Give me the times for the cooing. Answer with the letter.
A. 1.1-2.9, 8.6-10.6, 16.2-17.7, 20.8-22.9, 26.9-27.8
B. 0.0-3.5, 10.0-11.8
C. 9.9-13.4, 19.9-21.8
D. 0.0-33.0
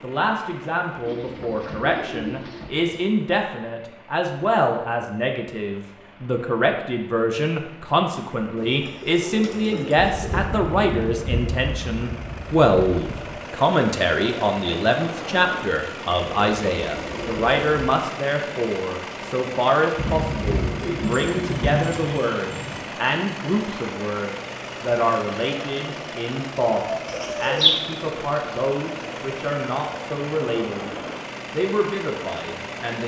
A.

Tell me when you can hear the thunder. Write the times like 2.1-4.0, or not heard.
9.9-13.4, 19.9-21.8.